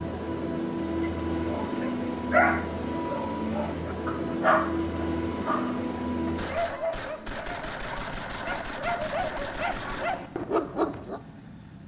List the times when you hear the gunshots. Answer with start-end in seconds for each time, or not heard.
6.3-10.2.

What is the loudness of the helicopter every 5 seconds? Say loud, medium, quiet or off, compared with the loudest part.
loud, medium, quiet.